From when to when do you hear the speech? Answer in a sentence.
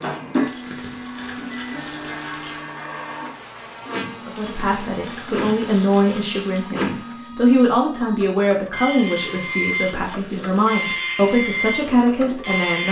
You can hear the speech from 4.2 to 12.8 s.